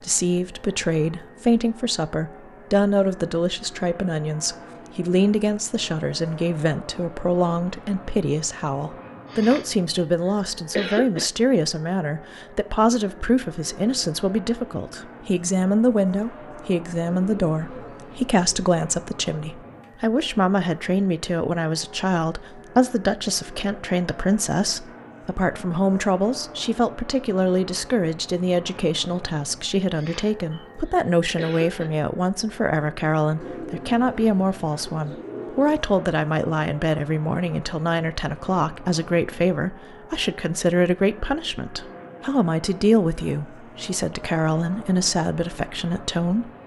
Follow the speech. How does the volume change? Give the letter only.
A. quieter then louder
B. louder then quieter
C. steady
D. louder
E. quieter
C.